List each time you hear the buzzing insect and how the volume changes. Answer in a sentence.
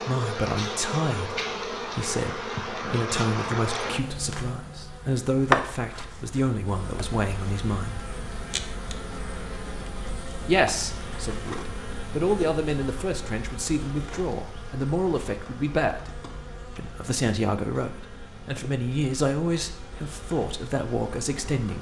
The buzzing insect can be heard from 0.0 to 21.7 s, getting quieter.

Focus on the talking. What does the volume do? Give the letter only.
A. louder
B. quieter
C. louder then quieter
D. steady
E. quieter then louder
D.